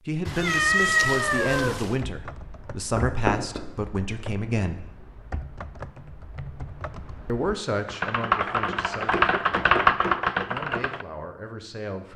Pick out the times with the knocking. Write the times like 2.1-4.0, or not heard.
3.0-3.6.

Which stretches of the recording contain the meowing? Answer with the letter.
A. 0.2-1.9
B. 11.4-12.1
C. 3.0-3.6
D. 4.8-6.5
A.